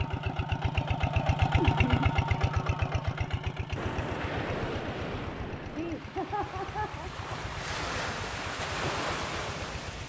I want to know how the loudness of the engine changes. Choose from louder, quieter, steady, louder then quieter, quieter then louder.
quieter.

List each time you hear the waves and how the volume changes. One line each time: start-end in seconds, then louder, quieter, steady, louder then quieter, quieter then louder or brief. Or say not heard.
3.8-10.0 quieter then louder.